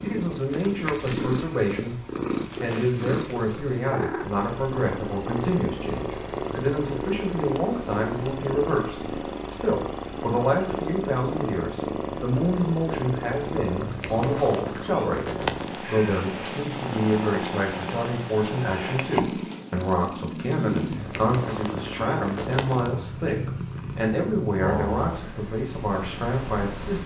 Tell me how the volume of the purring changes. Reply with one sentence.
The volume of the purring stays about the same.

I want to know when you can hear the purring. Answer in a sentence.
The purring can be heard from 0.0 to 27.0 s.